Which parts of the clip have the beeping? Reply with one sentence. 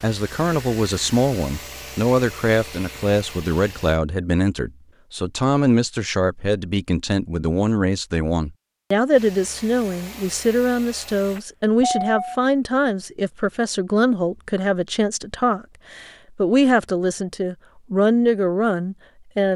The beeping can be heard from 11.3 to 12.4 s.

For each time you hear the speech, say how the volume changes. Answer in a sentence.
You can hear the speech from 0.0 to 19.5 s, at a steady volume.